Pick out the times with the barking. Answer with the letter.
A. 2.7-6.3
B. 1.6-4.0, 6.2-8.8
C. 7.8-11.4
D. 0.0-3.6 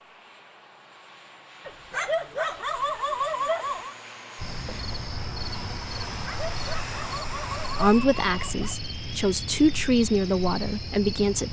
B.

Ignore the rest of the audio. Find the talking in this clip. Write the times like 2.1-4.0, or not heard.
7.8-11.4.